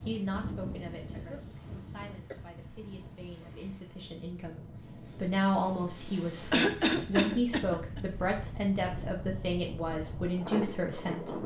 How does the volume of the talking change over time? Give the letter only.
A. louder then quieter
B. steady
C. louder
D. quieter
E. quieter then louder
C.